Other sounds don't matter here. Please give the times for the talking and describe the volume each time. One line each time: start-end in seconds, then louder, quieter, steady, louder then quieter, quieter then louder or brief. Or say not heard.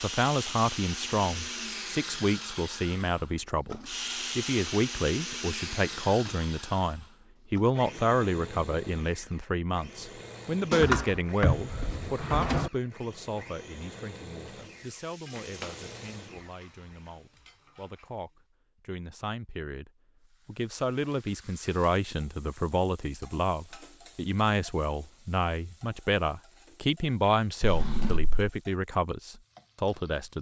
0.0-30.3 quieter then louder.